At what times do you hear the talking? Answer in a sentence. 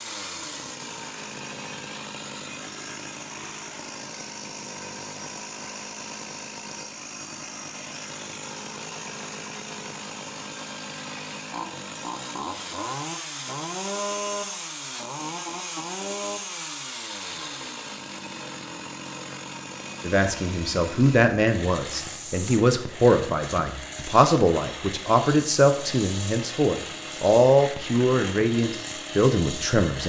You can hear the talking from 20.1 to 30.0 s.